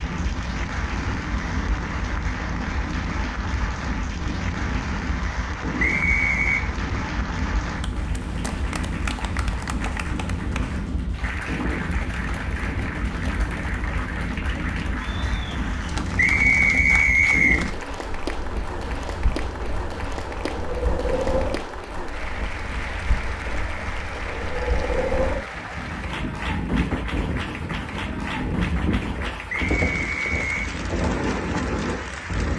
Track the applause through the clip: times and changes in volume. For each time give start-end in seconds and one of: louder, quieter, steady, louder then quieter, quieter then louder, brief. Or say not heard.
0.0-32.5 steady.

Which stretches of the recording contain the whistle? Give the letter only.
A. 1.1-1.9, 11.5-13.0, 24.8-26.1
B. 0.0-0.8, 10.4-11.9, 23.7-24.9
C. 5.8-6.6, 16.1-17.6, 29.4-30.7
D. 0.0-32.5
C.